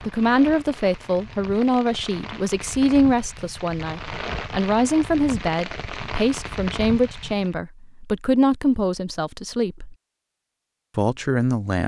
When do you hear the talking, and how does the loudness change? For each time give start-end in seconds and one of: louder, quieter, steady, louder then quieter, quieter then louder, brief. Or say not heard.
0.0-9.9 steady
10.9-11.8 brief.